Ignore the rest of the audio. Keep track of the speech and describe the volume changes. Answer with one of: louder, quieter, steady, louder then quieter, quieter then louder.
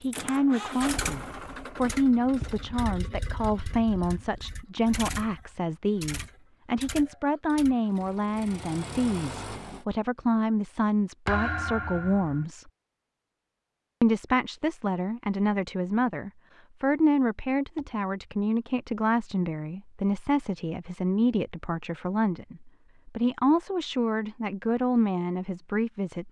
steady.